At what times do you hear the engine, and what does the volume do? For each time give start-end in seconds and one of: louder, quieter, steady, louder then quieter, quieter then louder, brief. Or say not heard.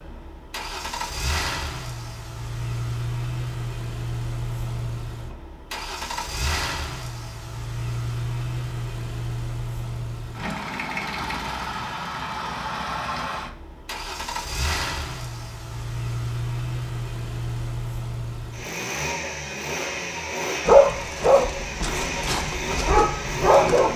0.0-23.9 steady.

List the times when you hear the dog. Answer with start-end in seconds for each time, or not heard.
20.6-23.9.